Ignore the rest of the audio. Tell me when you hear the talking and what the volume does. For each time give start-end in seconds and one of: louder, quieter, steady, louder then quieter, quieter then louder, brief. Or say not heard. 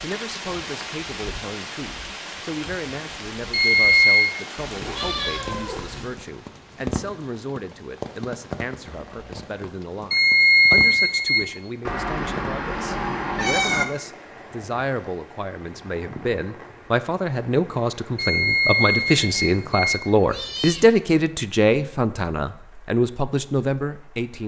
0.0-24.4 louder.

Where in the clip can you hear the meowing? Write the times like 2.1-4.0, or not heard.
4.6-6.2, 11.8-13.8, 20.2-20.9.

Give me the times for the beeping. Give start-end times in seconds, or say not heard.
3.5-4.3, 10.1-11.4, 18.1-20.0.